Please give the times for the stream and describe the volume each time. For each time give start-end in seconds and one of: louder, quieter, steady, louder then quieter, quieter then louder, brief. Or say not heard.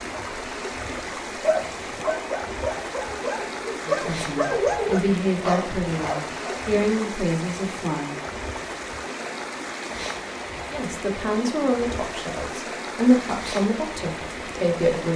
0.0-15.1 steady.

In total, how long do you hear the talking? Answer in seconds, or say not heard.
9 s.